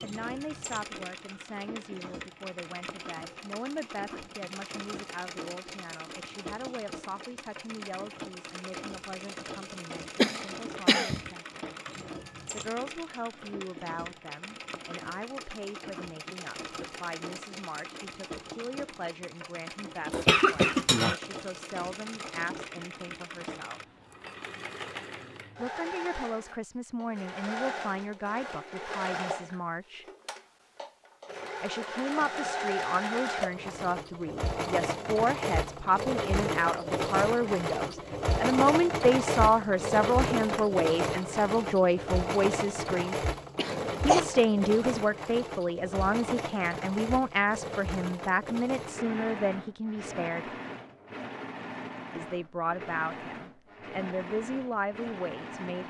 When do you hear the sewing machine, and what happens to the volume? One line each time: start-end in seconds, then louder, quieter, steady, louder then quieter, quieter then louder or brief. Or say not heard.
0.0-55.8 louder then quieter.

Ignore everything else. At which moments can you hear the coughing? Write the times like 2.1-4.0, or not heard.
10.2-11.3, 20.1-21.1, 43.5-44.2.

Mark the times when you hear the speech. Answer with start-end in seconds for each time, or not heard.
0.0-11.4, 12.5-23.8, 25.6-30.1, 31.6-43.1, 44.0-50.5, 52.1-55.8.